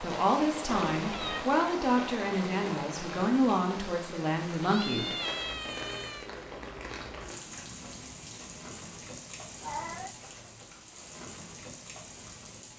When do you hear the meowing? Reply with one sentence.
The meowing can be heard from 0.7 to 1.4 s, from 4.6 to 6.3 s and from 9.6 to 10.2 s.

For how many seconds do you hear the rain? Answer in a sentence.
The rain can be heard for 13 seconds in total.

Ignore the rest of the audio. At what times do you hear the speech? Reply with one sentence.
The speech can be heard from 0.0 to 5.1 s.